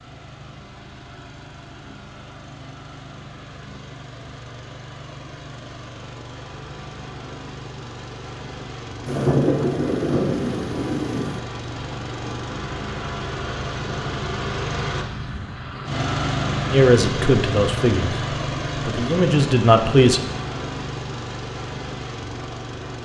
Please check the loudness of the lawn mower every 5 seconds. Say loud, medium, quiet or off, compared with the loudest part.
quiet, medium, loud, loud, medium.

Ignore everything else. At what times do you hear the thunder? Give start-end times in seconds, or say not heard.
9.1-11.4.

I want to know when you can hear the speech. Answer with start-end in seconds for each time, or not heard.
16.7-20.2.